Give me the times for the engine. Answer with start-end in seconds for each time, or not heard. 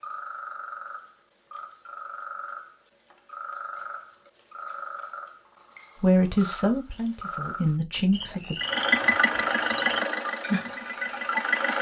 8.6-11.7.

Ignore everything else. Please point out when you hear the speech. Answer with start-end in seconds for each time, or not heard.
6.0-8.6.